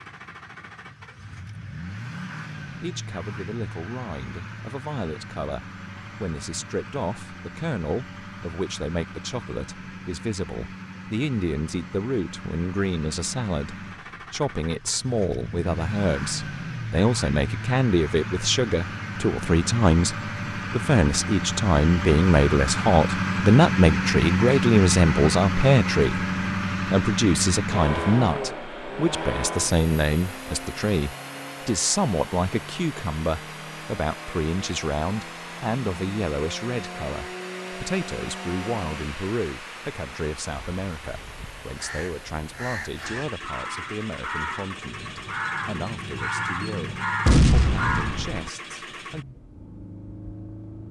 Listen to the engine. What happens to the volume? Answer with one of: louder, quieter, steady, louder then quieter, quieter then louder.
louder then quieter.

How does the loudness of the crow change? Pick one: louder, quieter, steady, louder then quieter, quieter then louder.
louder.